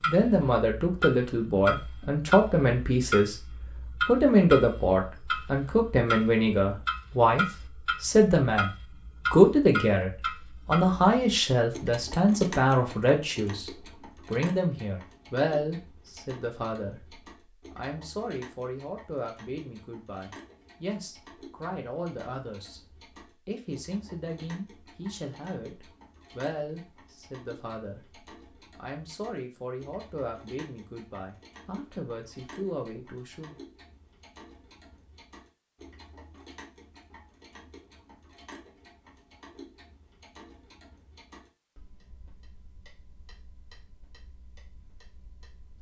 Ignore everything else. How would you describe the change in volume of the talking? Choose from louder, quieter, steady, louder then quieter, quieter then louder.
quieter.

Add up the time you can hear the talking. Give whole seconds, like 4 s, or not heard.
33 s.